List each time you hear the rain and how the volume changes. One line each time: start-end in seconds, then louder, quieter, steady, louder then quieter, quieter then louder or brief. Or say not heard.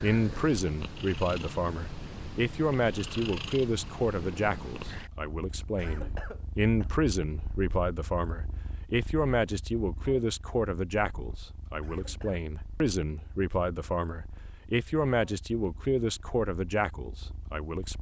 not heard.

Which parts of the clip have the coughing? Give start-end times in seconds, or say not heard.
5.2-6.9, 11.3-12.4.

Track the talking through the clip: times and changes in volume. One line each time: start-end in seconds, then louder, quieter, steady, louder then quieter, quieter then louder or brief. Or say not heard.
0.0-17.9 steady.